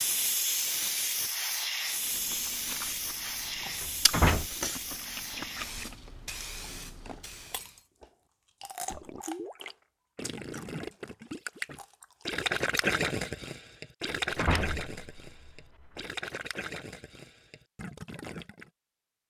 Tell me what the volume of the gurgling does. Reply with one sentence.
The volume of the gurgling goes up, then down.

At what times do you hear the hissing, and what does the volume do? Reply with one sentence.
The hissing can be heard from 0.0 to 7.8 s, getting quieter.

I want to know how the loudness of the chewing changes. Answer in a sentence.
The loudness of the chewing goes up, then down.